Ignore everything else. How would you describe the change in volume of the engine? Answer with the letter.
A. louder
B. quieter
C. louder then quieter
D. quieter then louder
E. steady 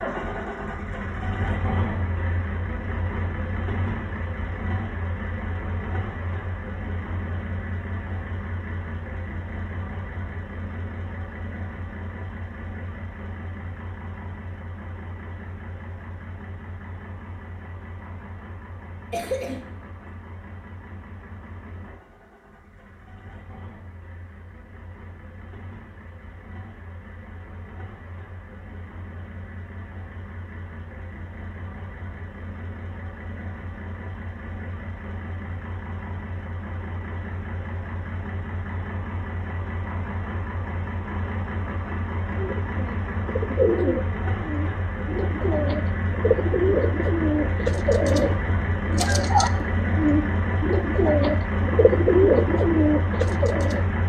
D.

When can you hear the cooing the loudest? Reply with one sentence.
The volume of the cooing peaks at 52 seconds.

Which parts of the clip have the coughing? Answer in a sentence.
You can hear the coughing from 19.1 to 20.1 s.